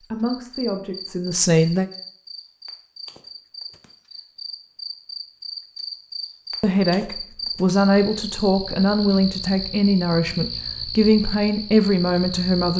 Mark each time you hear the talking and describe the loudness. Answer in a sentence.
You can hear the talking briefly from 0.1 to 1.9 s; and from 6.6 to 12.7 s, at a steady volume.